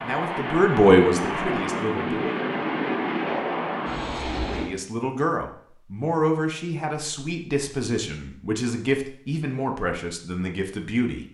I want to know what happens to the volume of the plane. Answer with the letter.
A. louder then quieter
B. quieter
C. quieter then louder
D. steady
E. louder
D.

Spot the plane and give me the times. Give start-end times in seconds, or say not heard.
0.0-4.7.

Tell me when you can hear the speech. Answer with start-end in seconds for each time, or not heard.
0.0-2.4, 4.5-11.2.